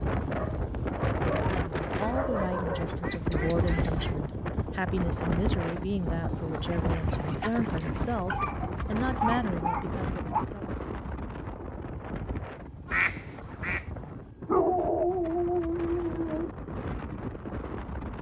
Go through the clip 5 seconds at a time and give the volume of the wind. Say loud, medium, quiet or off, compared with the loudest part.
loud, loud, medium, medium.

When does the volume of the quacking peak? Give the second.
13 s.